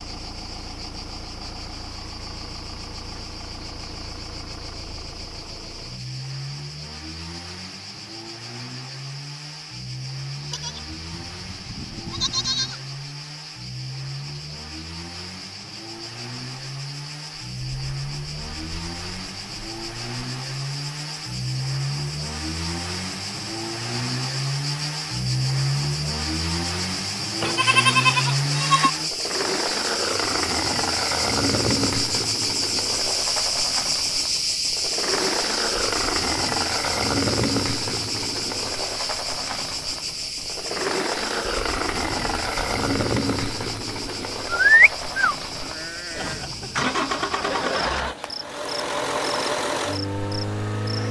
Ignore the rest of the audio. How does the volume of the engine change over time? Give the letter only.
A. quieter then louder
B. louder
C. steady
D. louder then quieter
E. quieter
B.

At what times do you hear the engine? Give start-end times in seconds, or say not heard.
0.0-51.0.